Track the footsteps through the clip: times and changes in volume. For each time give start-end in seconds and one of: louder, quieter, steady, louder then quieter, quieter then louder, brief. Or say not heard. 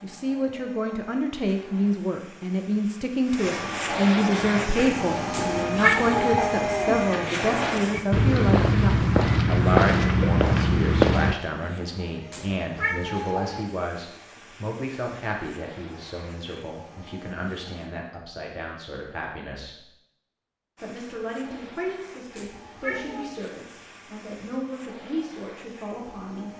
4.4-11.3 louder.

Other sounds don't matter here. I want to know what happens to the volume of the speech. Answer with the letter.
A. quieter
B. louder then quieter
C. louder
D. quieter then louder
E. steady
A.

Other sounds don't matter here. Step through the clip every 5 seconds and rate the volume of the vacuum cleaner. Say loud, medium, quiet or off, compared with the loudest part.
medium, loud, quiet, quiet, quiet, quiet.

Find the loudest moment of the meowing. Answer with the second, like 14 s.
6 s.